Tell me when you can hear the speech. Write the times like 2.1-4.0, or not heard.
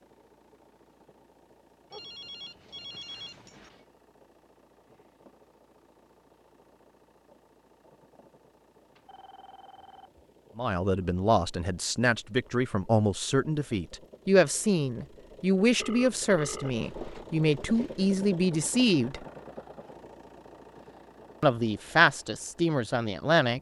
10.6-19.2, 21.4-23.5.